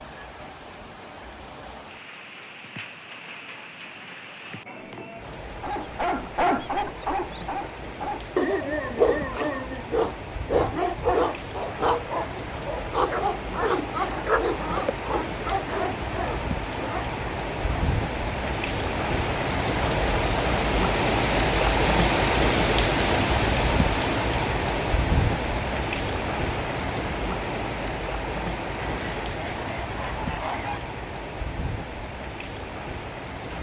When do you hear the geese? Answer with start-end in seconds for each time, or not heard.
28.8-30.8.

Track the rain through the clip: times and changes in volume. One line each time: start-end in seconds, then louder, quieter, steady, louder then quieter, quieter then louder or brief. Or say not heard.
0.0-33.5 louder then quieter.